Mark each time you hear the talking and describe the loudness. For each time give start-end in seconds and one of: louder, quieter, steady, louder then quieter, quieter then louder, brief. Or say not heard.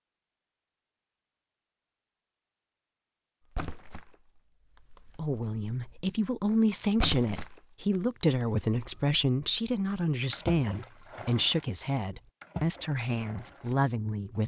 5.2-14.4 steady.